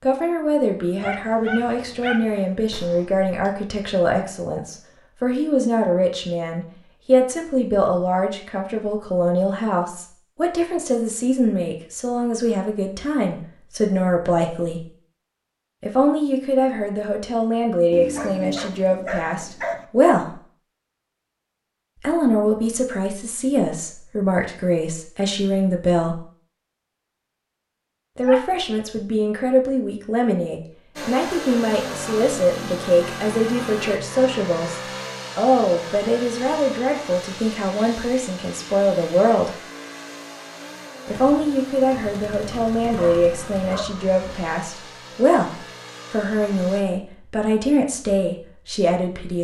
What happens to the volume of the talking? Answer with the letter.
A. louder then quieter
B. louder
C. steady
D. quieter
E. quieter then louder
C.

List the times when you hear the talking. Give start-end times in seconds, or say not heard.
0.0-14.8, 15.8-20.4, 22.0-26.2, 28.1-39.5, 41.0-49.3.